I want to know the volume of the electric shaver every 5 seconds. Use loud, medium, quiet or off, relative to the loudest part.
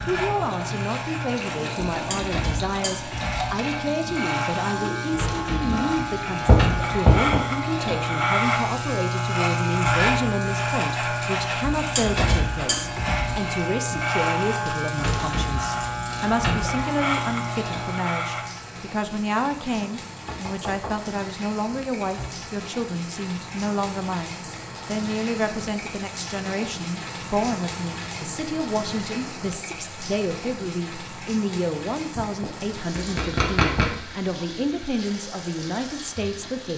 medium, loud, loud, loud, off, off, off, off.